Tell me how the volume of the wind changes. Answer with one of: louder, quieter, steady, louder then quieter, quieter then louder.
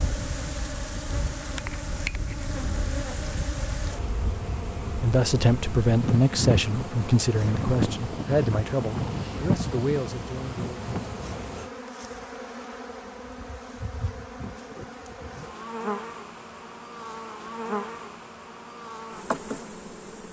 louder.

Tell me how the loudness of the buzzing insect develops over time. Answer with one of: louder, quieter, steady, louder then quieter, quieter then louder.
steady.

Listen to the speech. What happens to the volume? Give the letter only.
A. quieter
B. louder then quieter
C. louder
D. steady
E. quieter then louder
A.